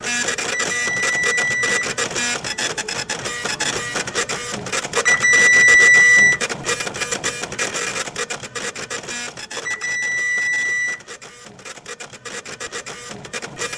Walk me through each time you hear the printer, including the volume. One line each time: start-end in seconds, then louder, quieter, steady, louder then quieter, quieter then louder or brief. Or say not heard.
0.0-13.7 quieter.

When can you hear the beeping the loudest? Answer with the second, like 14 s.
6 s.